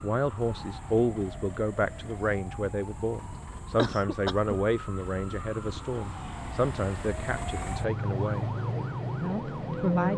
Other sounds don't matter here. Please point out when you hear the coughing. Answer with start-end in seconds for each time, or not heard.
3.8-4.5.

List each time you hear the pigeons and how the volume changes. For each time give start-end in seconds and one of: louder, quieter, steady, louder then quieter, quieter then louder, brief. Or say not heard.
not heard.